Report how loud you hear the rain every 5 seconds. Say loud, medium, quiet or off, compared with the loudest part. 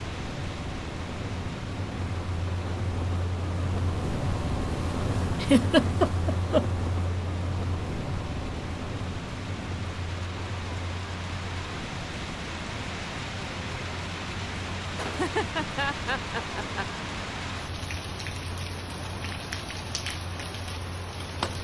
medium, medium, loud, loud, loud.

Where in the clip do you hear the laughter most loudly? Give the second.
6 s.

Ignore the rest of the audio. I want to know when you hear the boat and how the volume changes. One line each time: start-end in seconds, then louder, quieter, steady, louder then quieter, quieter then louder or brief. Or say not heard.
0.0-21.5 quieter.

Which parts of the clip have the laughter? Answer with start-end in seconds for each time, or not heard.
5.4-6.8, 14.9-17.1.